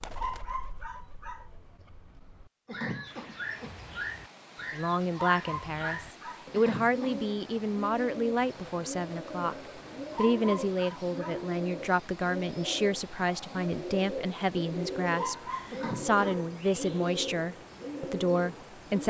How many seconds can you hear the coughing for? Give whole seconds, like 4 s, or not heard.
2 s.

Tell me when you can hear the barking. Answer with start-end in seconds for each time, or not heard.
0.1-1.5, 5.2-6.5, 10.1-11.4, 15.2-16.4.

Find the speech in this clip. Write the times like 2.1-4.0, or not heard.
4.7-9.6, 10.2-19.0.